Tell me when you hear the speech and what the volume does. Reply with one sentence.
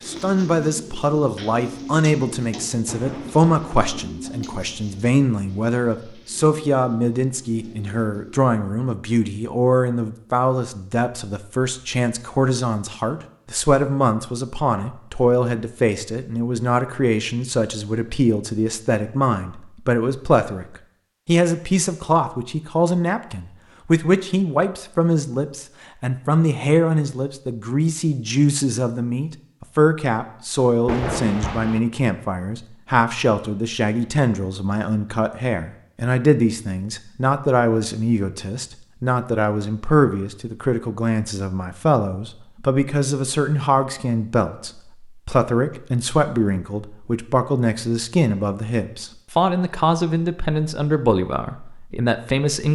You can hear the speech from 0.1 to 52.7 s, at a steady volume.